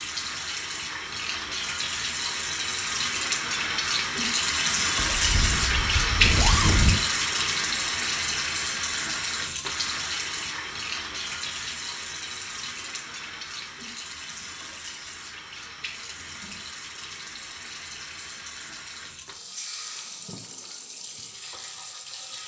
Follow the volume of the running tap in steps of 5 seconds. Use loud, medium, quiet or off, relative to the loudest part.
loud, loud, medium, quiet, quiet.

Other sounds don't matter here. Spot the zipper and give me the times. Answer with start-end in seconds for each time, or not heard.
5.0-7.0.